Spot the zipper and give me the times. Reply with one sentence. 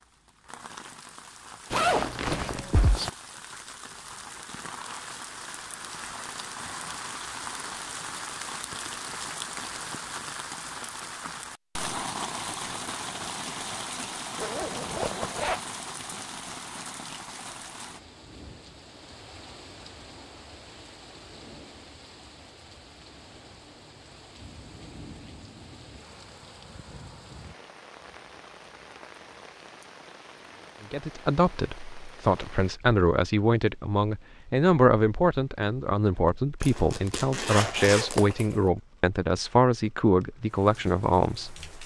You can hear the zipper from 1.7 to 3.1 s, from 14.3 to 15.6 s and from 36.6 to 38.5 s.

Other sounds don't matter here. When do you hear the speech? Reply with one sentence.
You can hear the speech from 30.9 to 41.6 s.